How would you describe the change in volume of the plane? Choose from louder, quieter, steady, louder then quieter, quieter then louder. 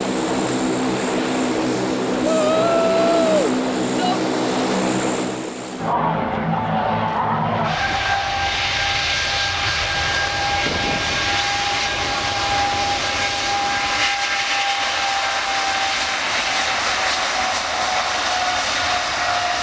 steady.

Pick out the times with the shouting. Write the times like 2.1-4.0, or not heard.
2.2-4.2.